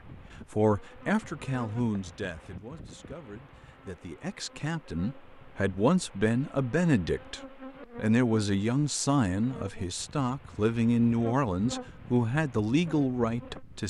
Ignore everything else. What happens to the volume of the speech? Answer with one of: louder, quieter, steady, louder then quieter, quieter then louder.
louder.